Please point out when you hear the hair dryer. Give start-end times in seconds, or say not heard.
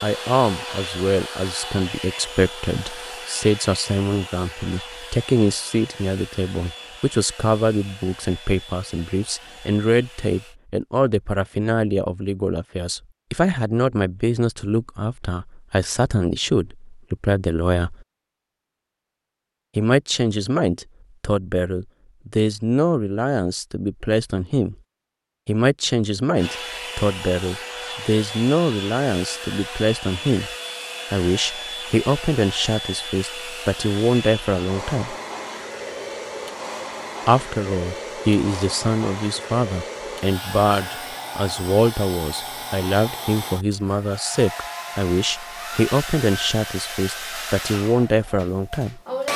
0.0-10.6, 26.4-49.3.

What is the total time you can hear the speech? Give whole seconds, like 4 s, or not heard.
44 s.